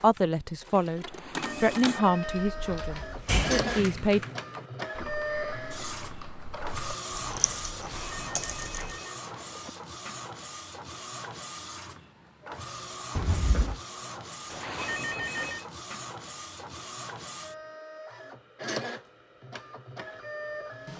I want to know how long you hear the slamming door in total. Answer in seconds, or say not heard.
2 s.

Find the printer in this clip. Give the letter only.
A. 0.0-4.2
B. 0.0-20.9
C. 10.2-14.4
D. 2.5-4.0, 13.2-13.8
B.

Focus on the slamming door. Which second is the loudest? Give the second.
3 s.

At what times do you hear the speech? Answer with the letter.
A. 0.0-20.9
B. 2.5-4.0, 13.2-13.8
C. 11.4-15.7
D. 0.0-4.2
D.